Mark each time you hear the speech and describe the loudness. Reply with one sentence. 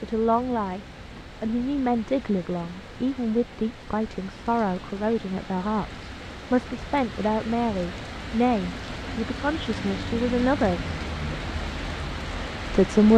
You can hear the speech briefly from 0.0 to 0.8 s; from 1.4 to 10.9 s, at a steady volume; and briefly from 12.7 to 13.1 s.